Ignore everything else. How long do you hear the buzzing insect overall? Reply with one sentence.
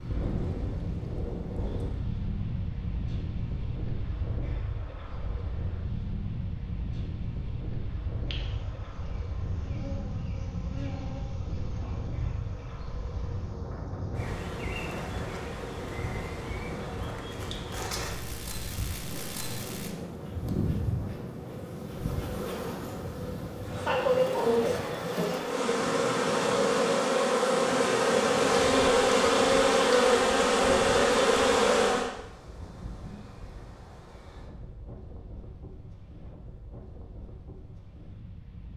The buzzing insect can be heard for 24 seconds in total.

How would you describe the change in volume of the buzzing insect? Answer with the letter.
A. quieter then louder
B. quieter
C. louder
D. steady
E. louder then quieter
C.